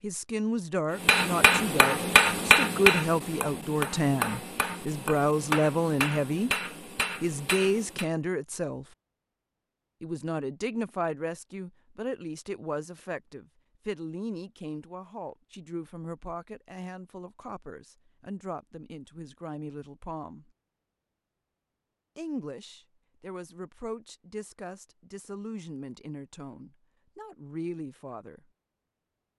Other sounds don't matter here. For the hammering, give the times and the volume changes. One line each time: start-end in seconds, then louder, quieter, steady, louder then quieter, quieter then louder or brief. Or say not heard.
1.0-8.1 quieter.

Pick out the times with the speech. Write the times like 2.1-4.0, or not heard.
0.0-6.5, 7.2-8.8, 10.0-20.5, 22.1-28.4.